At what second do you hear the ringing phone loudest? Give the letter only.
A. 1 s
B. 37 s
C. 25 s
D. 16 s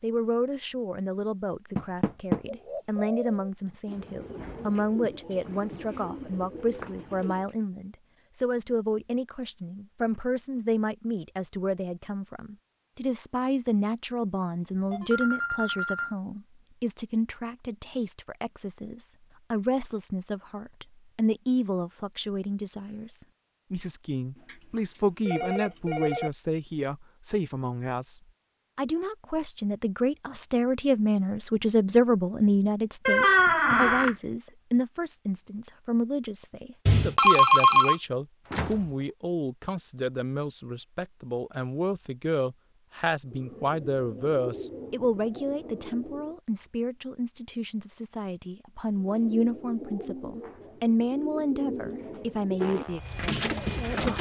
B.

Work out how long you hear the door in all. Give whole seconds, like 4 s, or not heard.
2 s.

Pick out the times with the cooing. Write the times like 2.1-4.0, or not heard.
2.5-7.5, 43.2-46.4, 49.0-54.1.